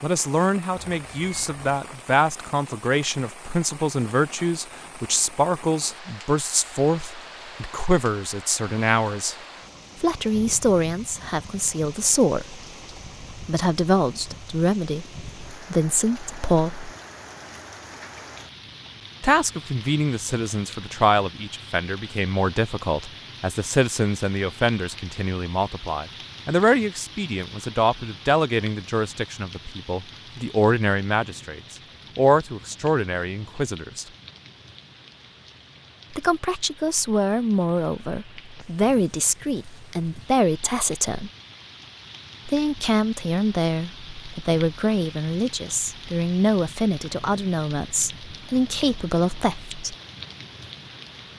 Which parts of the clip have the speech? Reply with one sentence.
You can hear the speech from 0.0 to 9.3 s, from 10.0 to 12.6 s, from 13.3 to 16.9 s, from 19.2 to 34.0 s, from 36.1 to 41.3 s and from 42.5 to 50.0 s.